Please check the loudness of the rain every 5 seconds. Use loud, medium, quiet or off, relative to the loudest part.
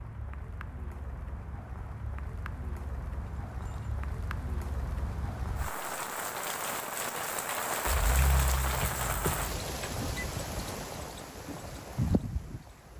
medium, loud, loud.